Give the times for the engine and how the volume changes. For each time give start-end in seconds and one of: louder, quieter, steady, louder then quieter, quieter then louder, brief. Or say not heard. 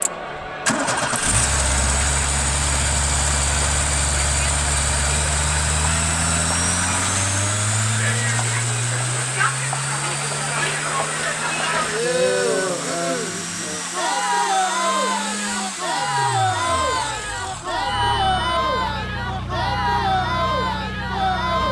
0.0-21.6 quieter.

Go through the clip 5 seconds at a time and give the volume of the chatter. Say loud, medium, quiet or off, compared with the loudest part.
medium, medium, loud, loud, loud.